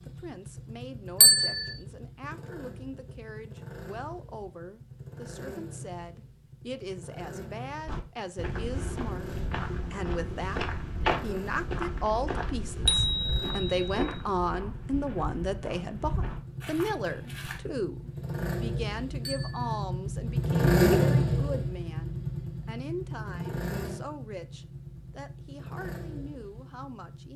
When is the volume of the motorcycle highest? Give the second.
21 s.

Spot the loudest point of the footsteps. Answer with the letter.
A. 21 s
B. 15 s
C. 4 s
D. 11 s
D.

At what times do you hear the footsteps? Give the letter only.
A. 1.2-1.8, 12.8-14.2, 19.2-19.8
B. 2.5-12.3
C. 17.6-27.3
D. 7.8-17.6
D.